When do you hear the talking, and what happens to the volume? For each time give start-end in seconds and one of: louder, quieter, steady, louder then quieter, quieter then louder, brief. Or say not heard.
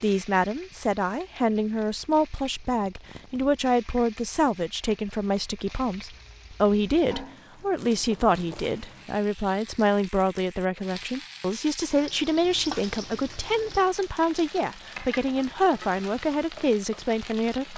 0.0-17.7 steady.